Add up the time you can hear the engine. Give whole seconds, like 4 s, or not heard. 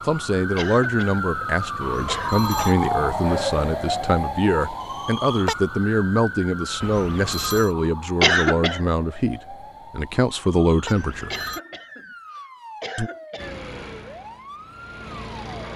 2 s.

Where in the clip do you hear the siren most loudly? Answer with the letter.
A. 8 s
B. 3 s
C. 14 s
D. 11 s
B.